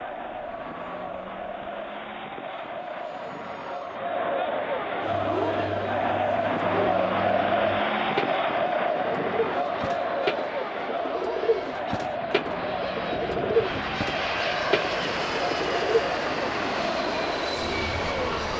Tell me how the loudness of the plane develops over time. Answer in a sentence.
The volume of the plane goes up.